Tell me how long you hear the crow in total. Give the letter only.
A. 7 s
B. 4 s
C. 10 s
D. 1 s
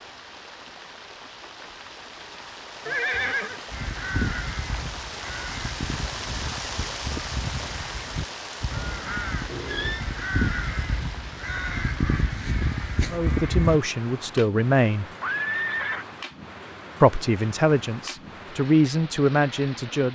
C.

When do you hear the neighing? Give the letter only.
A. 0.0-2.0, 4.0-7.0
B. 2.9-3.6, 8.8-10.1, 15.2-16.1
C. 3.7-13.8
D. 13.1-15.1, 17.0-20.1
B.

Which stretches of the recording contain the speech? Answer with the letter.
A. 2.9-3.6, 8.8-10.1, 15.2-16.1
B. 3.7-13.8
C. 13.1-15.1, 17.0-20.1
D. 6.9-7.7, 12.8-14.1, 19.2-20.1
C.